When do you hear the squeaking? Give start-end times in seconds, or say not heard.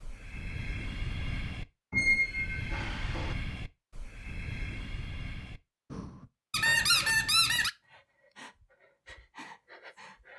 1.9-3.4, 6.5-7.7.